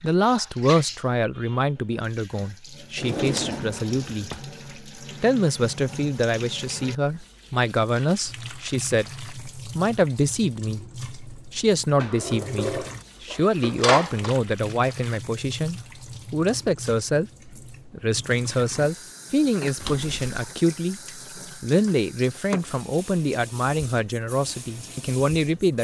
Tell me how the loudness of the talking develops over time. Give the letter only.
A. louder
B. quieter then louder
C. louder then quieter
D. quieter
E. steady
E.